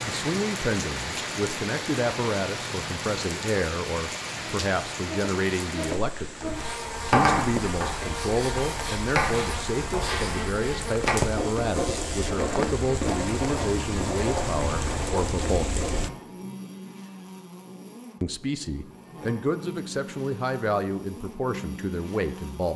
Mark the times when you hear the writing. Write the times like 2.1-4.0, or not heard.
6.5-16.0.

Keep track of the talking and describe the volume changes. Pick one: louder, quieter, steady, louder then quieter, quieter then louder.
steady.